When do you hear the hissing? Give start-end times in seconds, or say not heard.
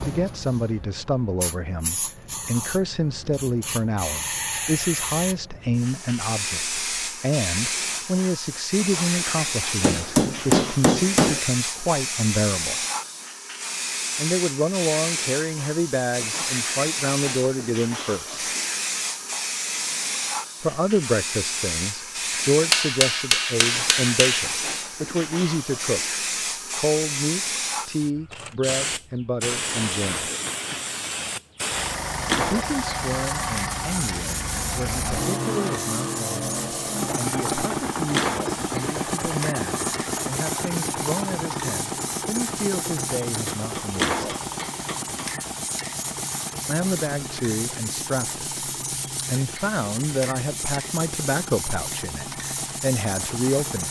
0.0-53.8.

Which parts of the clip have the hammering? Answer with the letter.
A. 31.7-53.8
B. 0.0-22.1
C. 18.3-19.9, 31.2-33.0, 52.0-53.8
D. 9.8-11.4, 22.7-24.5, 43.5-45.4
D.